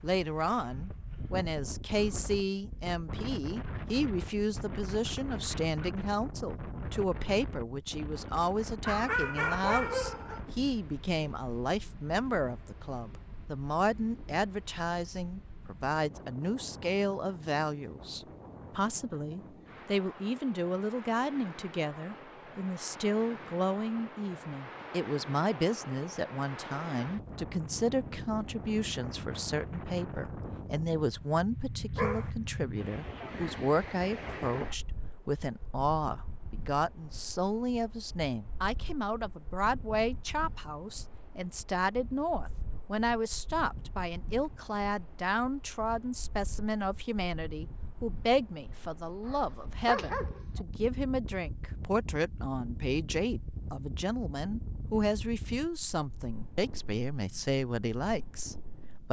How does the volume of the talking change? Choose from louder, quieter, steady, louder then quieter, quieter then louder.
steady.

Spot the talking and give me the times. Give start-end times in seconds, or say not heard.
0.0-59.0.